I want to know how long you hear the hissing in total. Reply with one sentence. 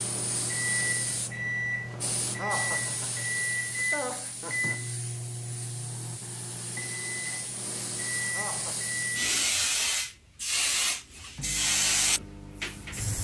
The hissing can be heard for 13 seconds in total.